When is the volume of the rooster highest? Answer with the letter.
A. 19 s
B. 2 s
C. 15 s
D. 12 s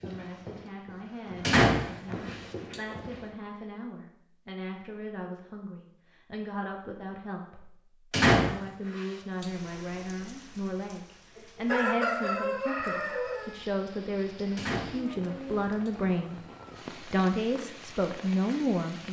D.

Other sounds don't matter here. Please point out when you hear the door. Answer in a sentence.
You can hear the door from 1.4 to 2.8 s, from 8.1 to 9.4 s and from 14.6 to 15.9 s.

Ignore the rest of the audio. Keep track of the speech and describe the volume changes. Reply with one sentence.
The volume of the speech goes up.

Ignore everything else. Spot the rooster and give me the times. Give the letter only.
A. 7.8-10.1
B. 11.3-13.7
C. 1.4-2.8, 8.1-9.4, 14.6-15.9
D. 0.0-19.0
B.